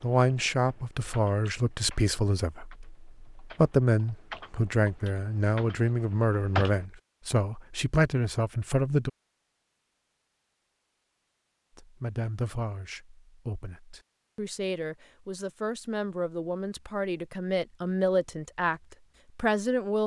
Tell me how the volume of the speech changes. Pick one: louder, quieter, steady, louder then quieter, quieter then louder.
quieter then louder.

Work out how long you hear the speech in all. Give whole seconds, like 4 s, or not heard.
17 s.